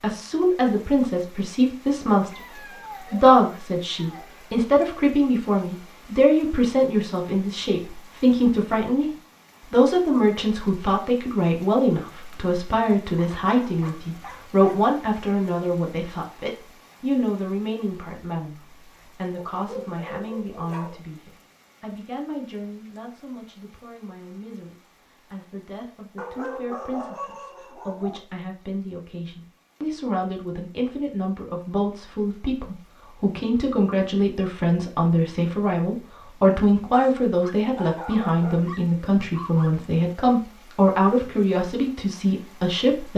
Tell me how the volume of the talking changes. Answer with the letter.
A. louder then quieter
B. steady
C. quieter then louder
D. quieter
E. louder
C.